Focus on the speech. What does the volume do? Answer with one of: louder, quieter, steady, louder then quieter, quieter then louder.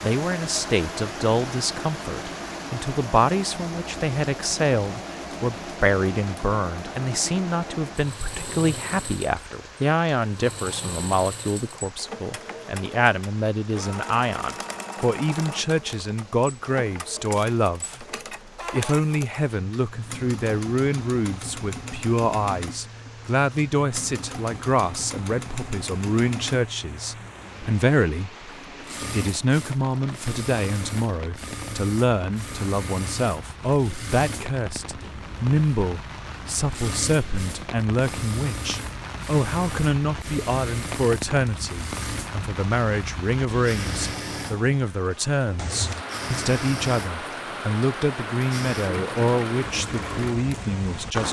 steady.